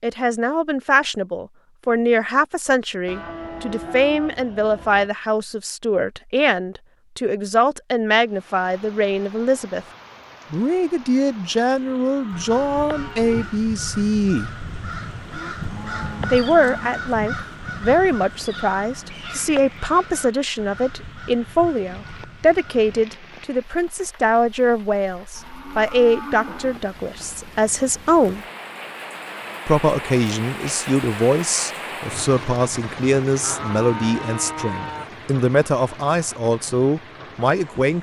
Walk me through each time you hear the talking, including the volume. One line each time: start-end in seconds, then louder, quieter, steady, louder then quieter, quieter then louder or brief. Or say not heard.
0.0-9.8 steady
10.5-14.5 steady
16.3-28.4 steady
29.6-37.9 steady.